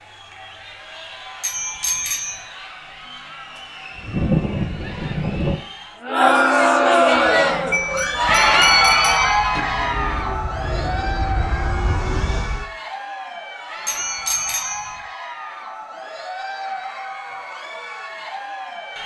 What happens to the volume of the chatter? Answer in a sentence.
The loudness of the chatter goes up, then down.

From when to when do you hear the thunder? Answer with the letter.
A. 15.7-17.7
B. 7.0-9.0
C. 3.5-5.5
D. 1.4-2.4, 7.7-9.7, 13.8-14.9
C.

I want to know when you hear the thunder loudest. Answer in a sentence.
The loudest moment of the thunder is at 4 seconds.